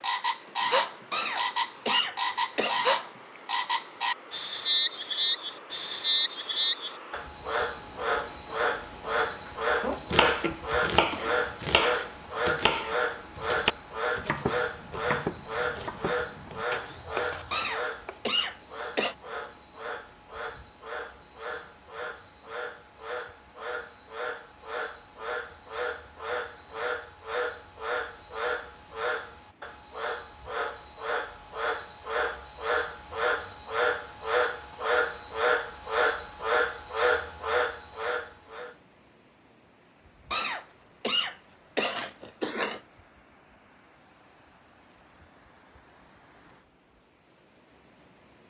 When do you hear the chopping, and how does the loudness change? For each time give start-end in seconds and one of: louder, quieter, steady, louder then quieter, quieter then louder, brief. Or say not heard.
9.4-18.2 quieter.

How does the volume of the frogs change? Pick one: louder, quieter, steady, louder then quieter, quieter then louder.
quieter then louder.